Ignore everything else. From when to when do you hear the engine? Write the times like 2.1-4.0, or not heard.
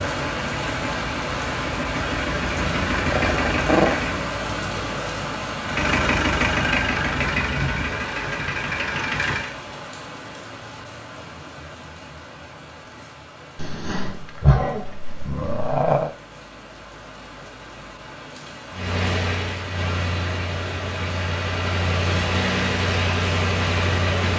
0.0-4.3, 5.6-9.6, 18.7-24.3.